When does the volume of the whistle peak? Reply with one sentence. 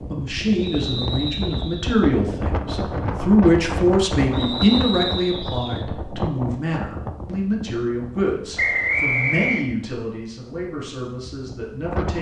The loudest moment of the whistle is at 9 seconds.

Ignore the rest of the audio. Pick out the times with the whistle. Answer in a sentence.
The whistle can be heard from 0.6 to 1.9 s, from 4.3 to 5.8 s and from 8.6 to 9.7 s.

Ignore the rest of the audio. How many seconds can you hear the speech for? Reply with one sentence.
You can hear the speech for 12 seconds altogether.